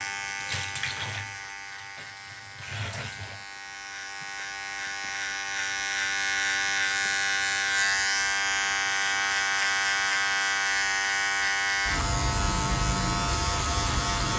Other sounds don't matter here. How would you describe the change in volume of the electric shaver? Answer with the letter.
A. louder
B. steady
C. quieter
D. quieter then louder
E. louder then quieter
A.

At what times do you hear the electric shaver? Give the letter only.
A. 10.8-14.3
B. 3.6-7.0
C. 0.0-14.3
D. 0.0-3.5
C.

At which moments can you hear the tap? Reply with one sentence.
The tap can be heard from 0.0 to 3.5 s.